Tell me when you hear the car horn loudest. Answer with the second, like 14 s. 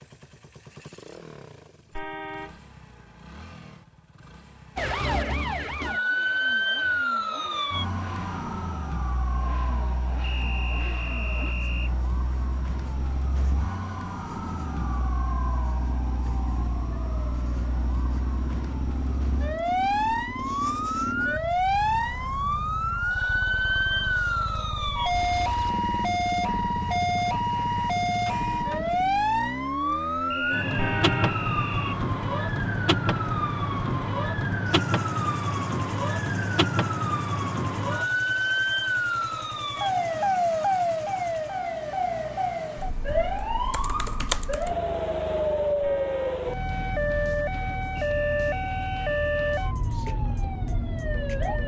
31 s.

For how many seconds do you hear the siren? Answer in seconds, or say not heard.
47 s.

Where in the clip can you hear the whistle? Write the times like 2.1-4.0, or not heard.
10.2-11.9, 30.3-32.0, 48.0-49.5.